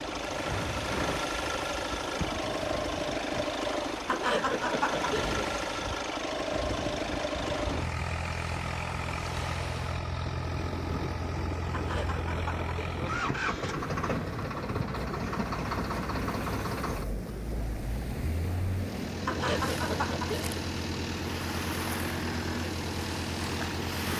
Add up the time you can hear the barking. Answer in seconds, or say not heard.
not heard.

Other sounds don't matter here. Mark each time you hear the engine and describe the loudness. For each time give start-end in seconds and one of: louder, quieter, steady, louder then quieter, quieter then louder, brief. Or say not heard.
0.0-24.1 steady.